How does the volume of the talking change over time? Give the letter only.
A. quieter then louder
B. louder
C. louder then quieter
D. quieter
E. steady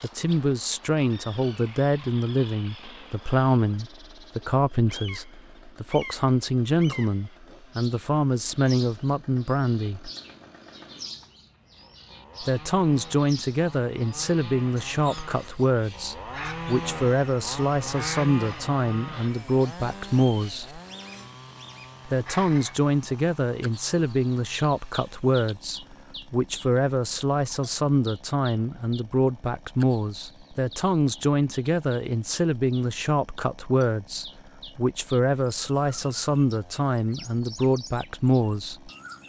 E.